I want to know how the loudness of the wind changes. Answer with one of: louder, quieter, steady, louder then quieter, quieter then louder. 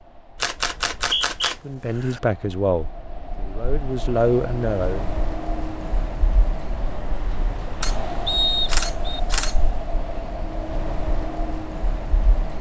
louder.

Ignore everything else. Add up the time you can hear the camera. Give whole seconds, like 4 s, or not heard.
4 s.